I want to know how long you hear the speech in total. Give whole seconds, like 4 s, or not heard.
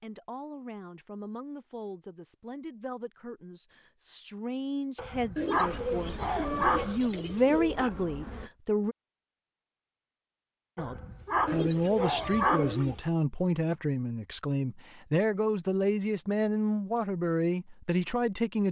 17 s.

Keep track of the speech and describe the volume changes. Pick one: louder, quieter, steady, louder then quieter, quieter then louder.
louder.